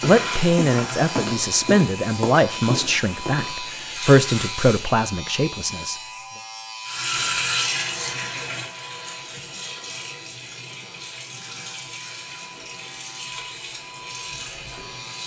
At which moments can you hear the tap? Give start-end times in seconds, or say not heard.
0.0-5.0, 6.8-15.2.